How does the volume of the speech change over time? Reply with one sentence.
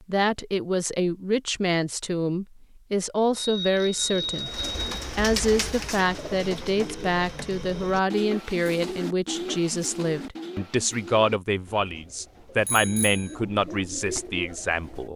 The loudness of the speech stays about the same.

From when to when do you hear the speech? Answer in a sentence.
You can hear the speech from 0.1 to 4.5 s and from 5.2 to 15.1 s.